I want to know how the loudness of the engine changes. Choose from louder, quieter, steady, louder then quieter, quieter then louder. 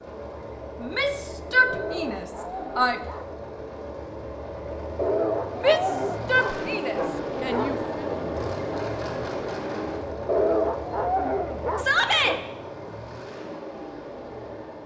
louder then quieter.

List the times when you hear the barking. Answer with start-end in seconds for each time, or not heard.
1.6-3.3, 5.0-7.8, 10.2-12.4.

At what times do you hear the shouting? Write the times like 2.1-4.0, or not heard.
0.8-3.0, 5.6-8.1, 11.8-12.3.